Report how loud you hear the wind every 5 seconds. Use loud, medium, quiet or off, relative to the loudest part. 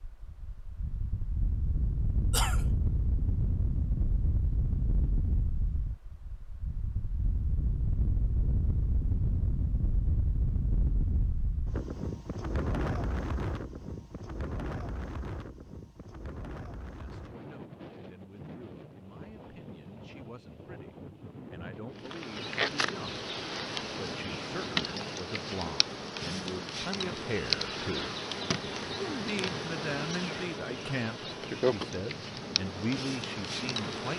loud, loud, loud, medium, medium, medium, medium.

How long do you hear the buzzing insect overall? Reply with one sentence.
You can hear the buzzing insect for 12 seconds altogether.